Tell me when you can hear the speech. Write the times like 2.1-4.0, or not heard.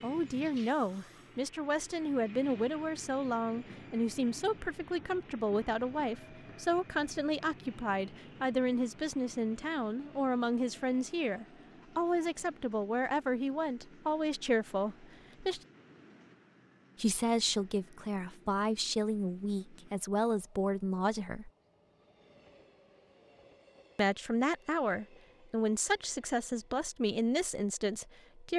0.0-15.6, 16.9-21.5, 23.9-28.5.